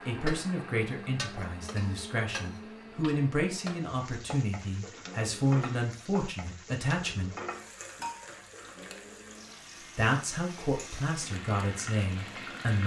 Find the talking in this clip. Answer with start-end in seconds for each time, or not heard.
0.1-7.3, 9.9-12.8.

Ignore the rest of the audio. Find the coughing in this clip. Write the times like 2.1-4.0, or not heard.
not heard.